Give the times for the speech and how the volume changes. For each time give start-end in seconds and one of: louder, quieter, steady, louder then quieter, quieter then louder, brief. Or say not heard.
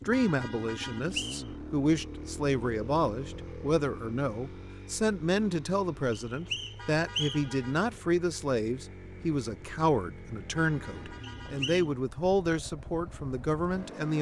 0.1-14.1 steady.